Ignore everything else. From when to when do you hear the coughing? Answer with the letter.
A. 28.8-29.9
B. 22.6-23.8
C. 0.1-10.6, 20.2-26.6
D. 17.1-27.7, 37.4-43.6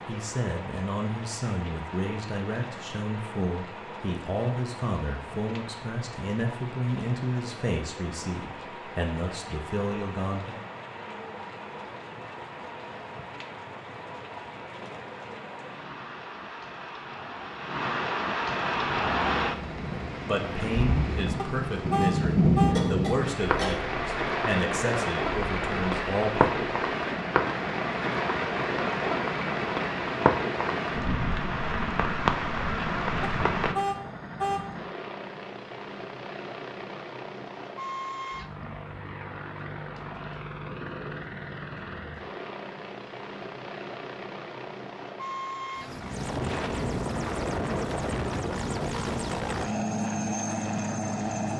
B.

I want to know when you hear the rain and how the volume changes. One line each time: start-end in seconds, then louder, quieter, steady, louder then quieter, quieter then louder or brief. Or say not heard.
0.0-33.8 louder.